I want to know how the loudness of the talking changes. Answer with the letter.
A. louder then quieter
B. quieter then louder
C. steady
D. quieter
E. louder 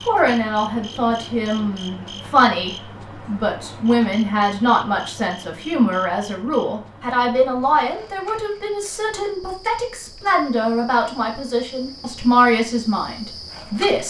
C.